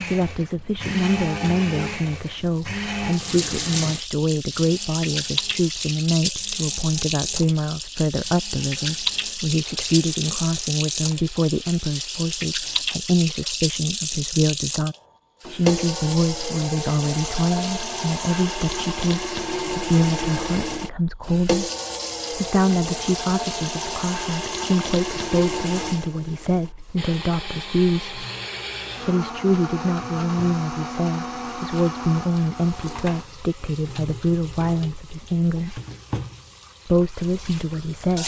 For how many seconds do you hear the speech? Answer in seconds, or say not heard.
36 s.